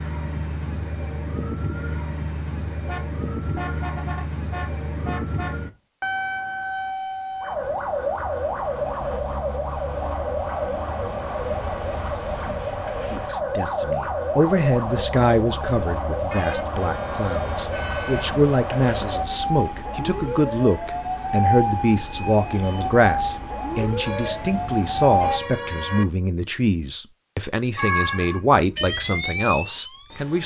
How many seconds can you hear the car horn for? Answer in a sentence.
The car horn can be heard for 7 seconds in total.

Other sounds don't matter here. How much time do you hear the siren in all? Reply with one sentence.
You can hear the siren for 28 seconds altogether.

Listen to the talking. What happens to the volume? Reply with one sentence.
The volume of the talking stays about the same.